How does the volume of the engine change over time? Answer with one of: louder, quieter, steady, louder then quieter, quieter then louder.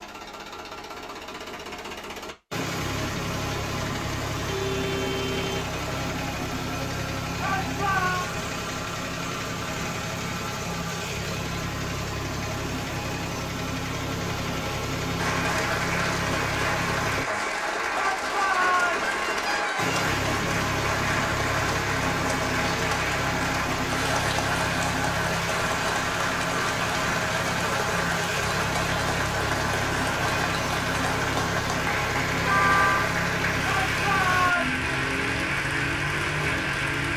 steady.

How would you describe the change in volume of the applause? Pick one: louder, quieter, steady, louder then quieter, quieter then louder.
steady.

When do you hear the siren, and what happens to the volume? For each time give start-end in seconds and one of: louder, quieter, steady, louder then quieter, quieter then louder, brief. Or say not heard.
not heard.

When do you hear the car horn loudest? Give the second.
33 s.